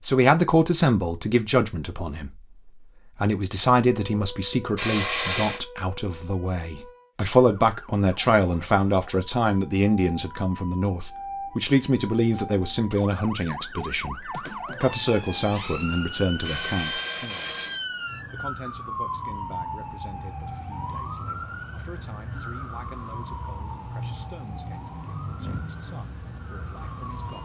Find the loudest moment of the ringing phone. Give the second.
5 s.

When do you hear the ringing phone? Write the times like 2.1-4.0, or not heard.
4.8-5.7, 16.4-17.8.